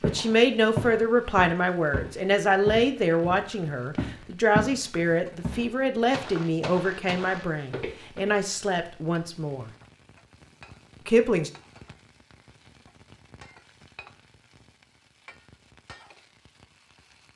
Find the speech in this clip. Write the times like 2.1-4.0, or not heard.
0.0-9.7, 11.1-11.5.